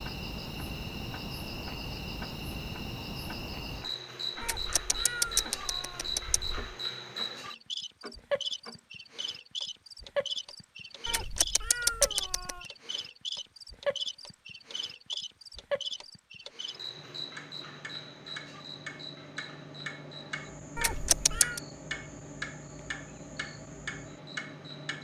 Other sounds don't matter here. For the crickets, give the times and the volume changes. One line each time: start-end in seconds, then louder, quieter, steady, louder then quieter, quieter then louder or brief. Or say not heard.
0.0-24.9 quieter.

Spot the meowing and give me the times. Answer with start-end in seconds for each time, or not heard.
4.4-6.8, 11.1-12.7, 20.8-21.6.